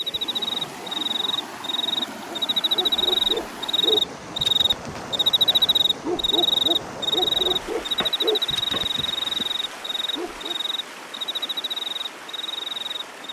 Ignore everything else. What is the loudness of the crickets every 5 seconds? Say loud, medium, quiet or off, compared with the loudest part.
loud, loud, medium.